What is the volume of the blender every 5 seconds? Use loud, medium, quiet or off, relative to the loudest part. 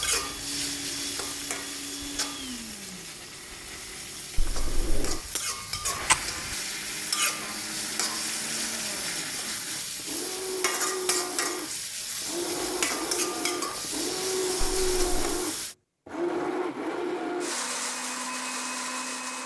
medium, medium, loud, loud.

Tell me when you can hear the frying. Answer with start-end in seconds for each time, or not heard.
0.0-15.8.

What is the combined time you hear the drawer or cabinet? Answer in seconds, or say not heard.
2 s.